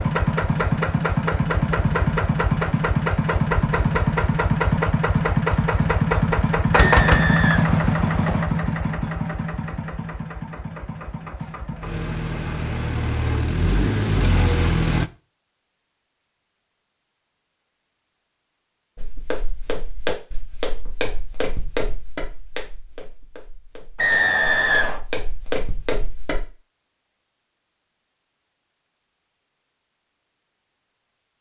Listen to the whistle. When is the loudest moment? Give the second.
24 s.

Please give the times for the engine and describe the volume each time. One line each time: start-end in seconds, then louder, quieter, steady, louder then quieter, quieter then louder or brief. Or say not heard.
0.0-15.1 quieter then louder.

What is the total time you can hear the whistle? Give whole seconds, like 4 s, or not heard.
3 s.